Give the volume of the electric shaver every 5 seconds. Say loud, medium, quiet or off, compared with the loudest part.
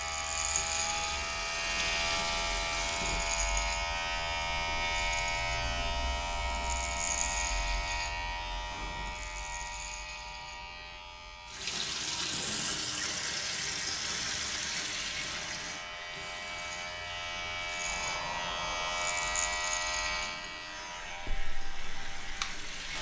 loud, loud, quiet, loud, medium.